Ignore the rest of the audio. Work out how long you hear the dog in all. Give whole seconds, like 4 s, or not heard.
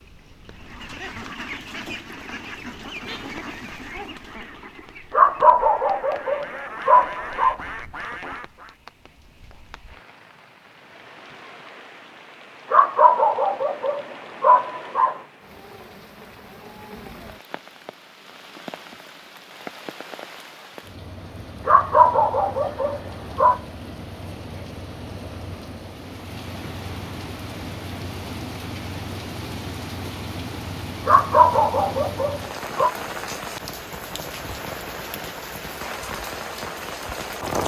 9 s.